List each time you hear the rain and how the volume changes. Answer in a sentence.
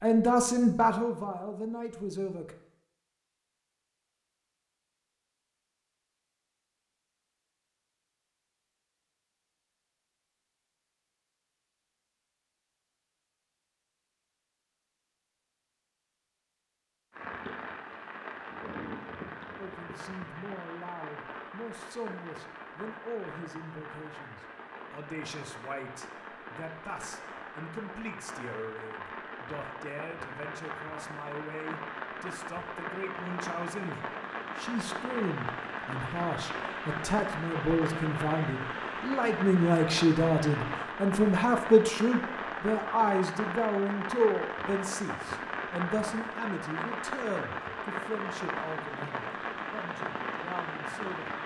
The rain can be heard from 17.1 to 51.4 s, getting louder.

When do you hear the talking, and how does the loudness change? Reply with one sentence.
You can hear the talking briefly from 0.0 to 2.5 s; and from 19.6 to 51.3 s, getting louder then quieter.